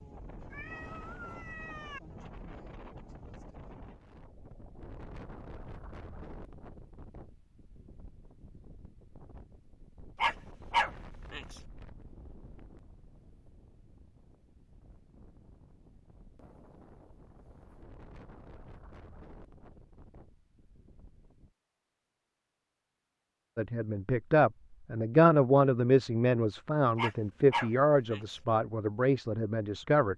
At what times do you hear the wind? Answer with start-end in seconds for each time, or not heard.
0.0-21.6.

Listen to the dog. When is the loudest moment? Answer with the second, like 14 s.
11 s.